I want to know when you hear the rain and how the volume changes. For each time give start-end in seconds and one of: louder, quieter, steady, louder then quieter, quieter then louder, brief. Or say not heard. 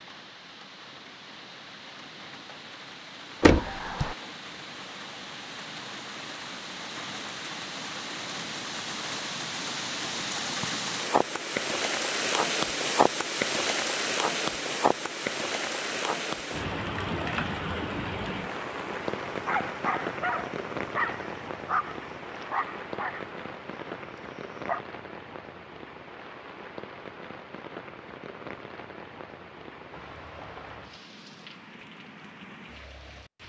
0.0-33.4 louder then quieter.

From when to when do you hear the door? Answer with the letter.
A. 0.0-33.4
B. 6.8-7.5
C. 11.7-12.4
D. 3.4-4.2
D.